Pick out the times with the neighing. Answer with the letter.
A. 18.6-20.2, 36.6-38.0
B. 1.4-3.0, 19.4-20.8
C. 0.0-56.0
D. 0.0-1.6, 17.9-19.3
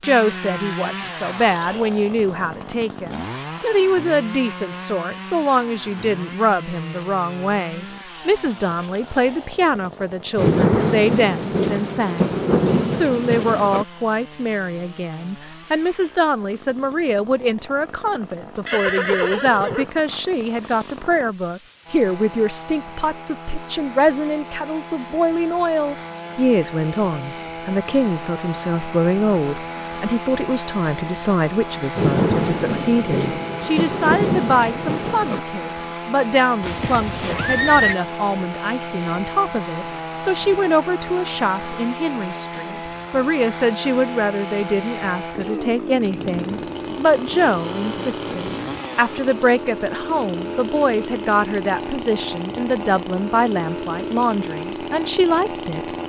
A.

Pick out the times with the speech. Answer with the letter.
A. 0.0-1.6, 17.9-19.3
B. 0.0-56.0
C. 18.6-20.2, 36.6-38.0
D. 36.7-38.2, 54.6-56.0
B.